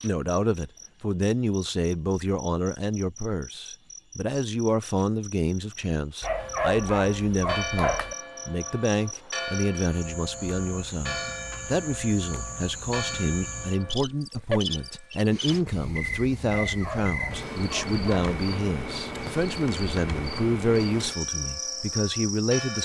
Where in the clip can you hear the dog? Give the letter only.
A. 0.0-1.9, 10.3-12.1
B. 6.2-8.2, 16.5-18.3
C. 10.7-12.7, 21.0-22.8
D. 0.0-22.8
B.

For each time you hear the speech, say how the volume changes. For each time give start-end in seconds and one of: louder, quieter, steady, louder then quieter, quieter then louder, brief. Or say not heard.
0.0-22.8 steady.